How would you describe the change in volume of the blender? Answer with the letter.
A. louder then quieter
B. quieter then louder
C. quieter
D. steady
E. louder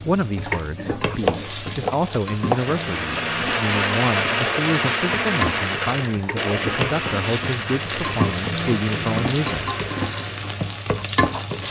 C.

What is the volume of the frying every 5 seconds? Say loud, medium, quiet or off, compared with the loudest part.
medium, loud, loud.